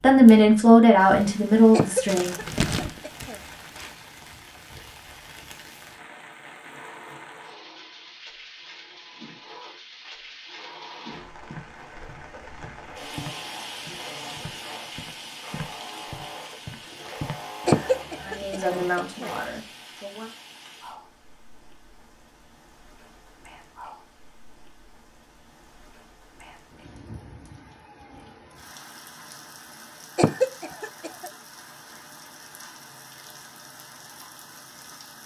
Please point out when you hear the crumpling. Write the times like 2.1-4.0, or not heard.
2.0-4.2.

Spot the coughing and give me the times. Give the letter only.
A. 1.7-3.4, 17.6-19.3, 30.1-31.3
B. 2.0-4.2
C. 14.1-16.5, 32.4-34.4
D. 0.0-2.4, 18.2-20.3
A.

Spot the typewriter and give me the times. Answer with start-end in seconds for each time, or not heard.
not heard.